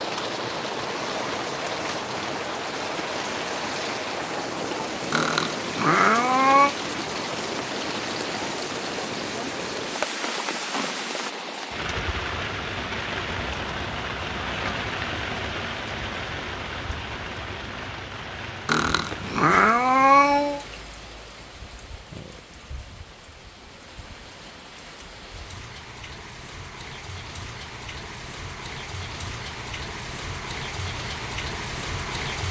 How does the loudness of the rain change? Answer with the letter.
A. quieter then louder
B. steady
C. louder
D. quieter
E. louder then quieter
A.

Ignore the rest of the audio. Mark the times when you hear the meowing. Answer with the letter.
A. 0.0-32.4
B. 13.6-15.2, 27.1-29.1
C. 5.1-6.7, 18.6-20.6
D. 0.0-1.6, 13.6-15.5
C.